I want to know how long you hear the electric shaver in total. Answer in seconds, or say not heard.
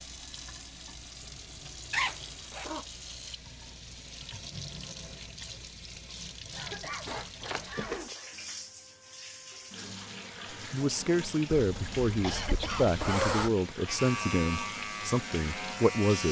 2 s.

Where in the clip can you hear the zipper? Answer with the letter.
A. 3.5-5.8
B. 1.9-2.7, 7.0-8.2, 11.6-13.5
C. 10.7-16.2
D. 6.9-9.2
B.